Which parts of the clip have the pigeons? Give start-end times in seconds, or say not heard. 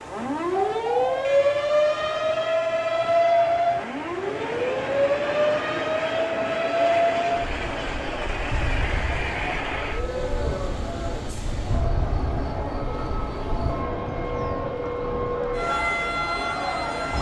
0.6-1.4.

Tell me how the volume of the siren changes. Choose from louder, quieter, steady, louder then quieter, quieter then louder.
quieter then louder.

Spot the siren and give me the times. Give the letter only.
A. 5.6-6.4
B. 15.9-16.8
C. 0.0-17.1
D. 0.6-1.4
C.